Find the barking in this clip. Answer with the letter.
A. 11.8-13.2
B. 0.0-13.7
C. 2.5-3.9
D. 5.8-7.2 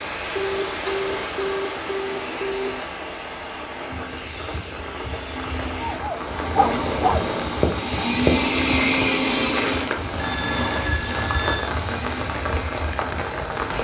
D.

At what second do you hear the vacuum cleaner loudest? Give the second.
9 s.